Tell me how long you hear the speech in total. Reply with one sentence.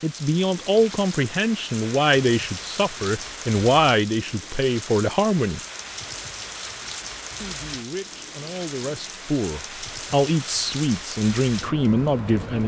The speech can be heard for 11 seconds in total.